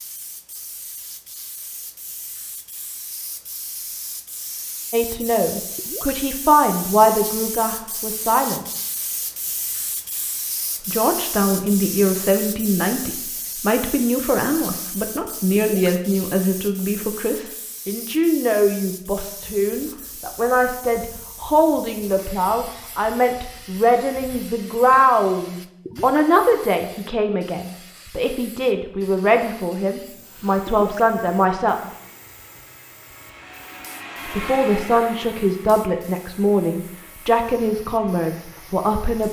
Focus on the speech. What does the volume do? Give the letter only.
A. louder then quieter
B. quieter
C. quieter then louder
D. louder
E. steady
E.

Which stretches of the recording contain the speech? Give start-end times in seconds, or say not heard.
4.9-8.7, 10.8-31.9, 34.2-39.2.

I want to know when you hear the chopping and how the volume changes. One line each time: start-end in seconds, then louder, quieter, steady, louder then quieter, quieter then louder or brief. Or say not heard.
not heard.